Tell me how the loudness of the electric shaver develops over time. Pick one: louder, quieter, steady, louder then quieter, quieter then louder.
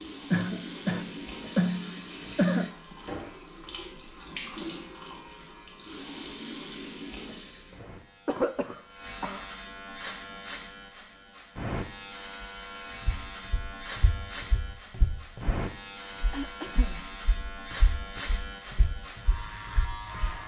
louder.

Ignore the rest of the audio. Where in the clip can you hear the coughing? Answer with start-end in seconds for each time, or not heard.
0.3-2.7, 7.8-9.4, 16.3-17.0.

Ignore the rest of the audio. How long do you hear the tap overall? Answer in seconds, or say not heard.
8 s.